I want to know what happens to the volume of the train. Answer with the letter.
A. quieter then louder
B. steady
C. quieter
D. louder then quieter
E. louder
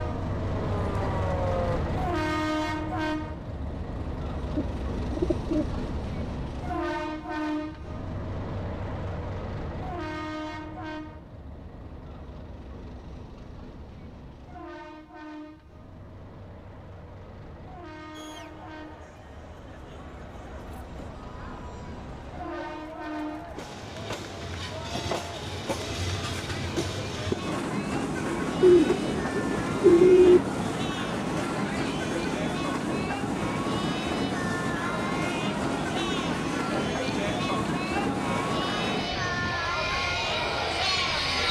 A.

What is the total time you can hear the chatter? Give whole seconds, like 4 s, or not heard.
23 s.